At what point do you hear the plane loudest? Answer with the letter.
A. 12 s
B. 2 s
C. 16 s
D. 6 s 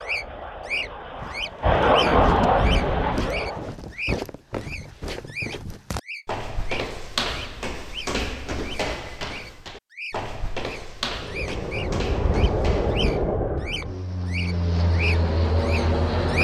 B.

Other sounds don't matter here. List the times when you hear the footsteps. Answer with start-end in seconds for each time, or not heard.
1.1-13.3.